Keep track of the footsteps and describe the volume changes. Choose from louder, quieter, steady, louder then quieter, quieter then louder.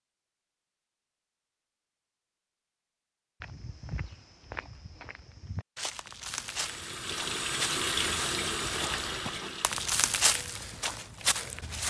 louder.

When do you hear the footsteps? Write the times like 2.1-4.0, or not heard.
3.4-11.8.